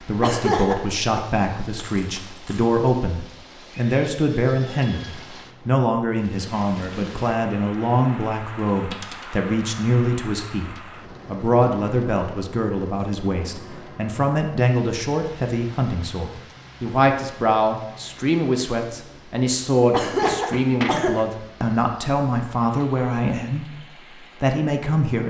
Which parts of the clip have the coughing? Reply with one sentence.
You can hear the coughing from 0.2 to 1.2 s and from 19.9 to 21.2 s.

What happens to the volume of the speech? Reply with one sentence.
The volume of the speech stays about the same.